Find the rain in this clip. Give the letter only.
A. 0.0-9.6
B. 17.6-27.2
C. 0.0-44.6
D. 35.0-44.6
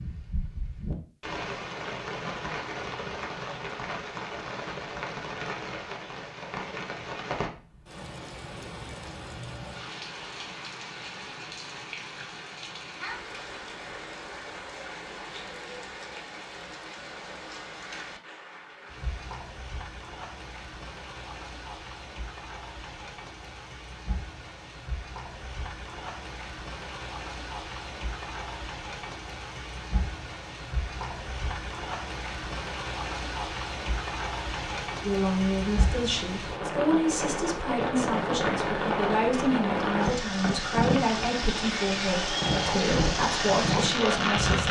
C.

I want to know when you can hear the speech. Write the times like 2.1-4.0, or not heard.
35.0-44.6.